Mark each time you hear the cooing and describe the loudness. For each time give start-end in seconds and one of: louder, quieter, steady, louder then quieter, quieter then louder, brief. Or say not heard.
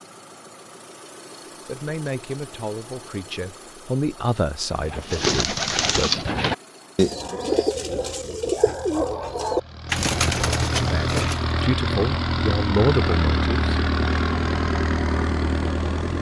4.7-11.4 steady.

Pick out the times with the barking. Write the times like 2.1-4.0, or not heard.
not heard.